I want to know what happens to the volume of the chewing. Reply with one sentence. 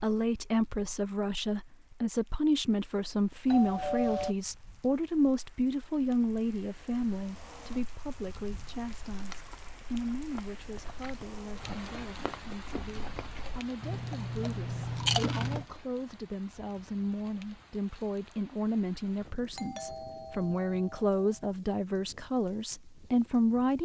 The loudness of the chewing goes up.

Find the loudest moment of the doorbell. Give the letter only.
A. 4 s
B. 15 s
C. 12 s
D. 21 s
A.